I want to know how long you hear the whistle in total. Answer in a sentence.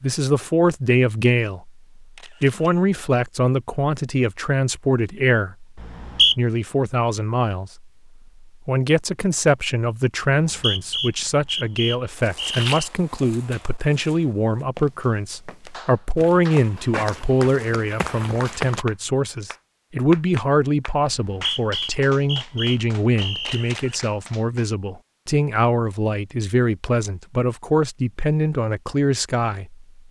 You can hear the whistle for 6 seconds altogether.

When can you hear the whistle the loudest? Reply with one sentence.
The volume of the whistle peaks at 6 seconds.